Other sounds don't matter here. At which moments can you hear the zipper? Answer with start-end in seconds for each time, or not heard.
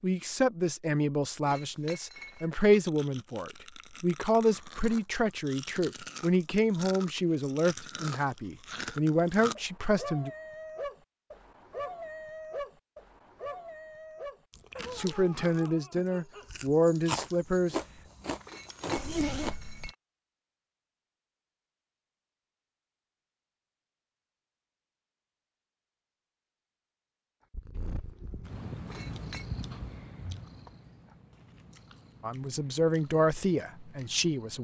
18.9-19.9.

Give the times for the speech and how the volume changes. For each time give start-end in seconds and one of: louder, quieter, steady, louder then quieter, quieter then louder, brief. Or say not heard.
0.0-10.3 steady
14.9-17.8 brief
32.2-34.5 brief.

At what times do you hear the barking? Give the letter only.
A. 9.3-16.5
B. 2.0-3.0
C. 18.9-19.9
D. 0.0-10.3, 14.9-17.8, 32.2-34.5
A.